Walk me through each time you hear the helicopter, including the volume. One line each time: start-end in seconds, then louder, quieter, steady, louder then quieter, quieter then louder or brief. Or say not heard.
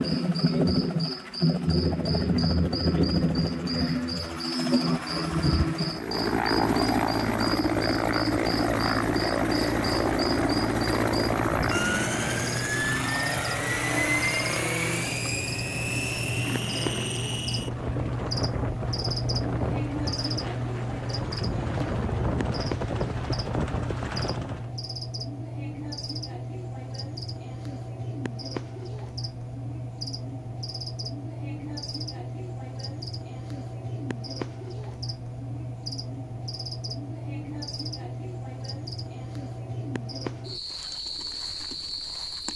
0.0-24.7 quieter.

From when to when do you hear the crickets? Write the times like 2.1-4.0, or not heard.
0.0-42.5.